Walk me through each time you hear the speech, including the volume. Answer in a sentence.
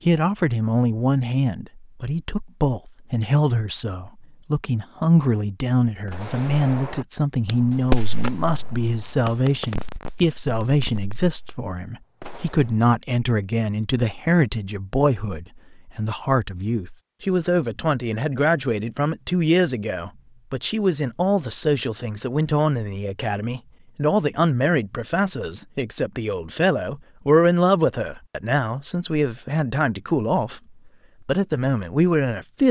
You can hear the speech from 0.1 to 32.6 s, at a steady volume.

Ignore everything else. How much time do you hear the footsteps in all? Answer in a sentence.
The footsteps can't be heard in this clip.